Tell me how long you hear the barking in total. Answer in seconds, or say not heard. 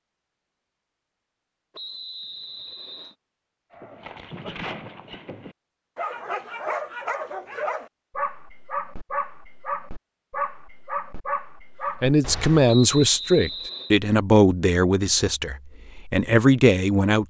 9 s.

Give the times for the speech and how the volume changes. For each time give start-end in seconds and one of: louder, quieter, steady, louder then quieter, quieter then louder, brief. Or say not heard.
12.0-17.2 quieter then louder.